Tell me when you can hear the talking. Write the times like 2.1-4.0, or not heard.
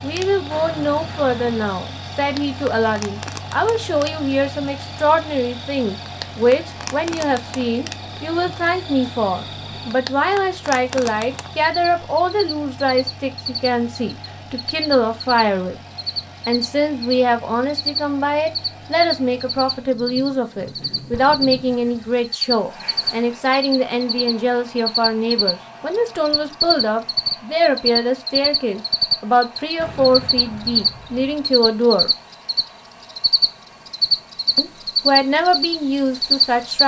0.0-15.8, 16.4-32.1, 34.5-36.8.